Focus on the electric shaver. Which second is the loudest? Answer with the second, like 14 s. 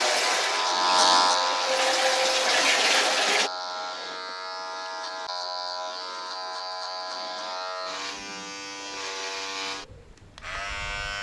1 s.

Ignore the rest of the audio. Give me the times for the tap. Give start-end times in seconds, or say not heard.
0.0-3.5.